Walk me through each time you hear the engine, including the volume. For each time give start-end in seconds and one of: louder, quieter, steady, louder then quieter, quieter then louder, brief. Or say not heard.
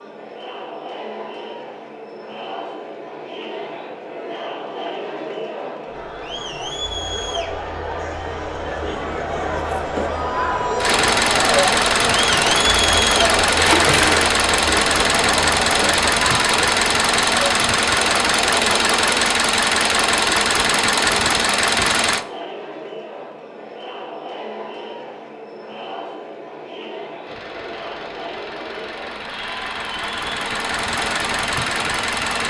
10.8-22.2 steady
27.2-32.4 louder.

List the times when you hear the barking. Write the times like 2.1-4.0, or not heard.
not heard.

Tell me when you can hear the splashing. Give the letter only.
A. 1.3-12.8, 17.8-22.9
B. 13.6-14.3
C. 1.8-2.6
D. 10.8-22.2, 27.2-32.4
B.